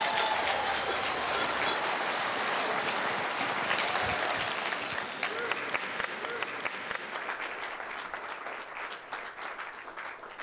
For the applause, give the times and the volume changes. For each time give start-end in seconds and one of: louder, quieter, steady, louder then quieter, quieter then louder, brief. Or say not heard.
0.0-10.3 quieter.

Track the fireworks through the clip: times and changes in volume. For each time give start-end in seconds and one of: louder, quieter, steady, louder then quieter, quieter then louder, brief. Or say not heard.
not heard.